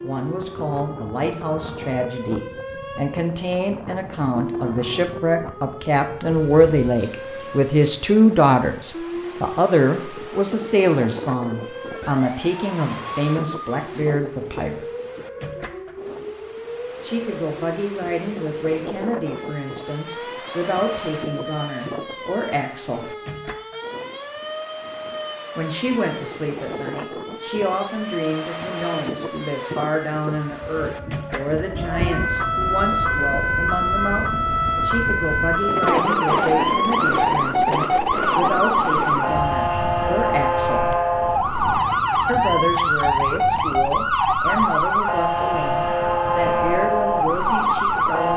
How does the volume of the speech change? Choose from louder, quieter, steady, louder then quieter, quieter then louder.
quieter.